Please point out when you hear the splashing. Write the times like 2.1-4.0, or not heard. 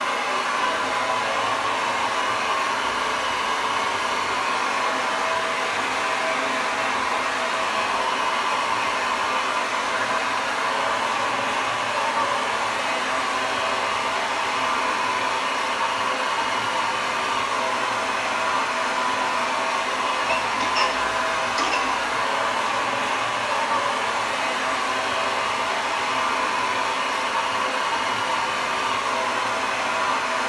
not heard.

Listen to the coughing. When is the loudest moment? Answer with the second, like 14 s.
21 s.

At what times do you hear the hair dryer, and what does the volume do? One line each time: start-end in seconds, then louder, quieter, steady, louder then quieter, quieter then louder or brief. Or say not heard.
0.0-30.4 steady.